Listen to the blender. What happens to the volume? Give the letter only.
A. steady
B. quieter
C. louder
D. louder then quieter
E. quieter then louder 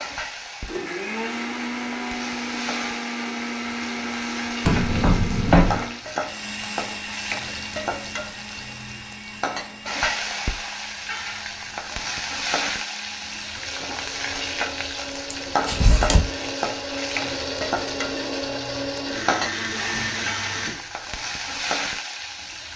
E.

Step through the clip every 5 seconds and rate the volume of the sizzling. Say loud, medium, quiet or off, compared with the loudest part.
medium, loud, loud, loud, loud.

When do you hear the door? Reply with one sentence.
The door can be heard from 4.7 to 5.8 s and from 15.3 to 16.2 s.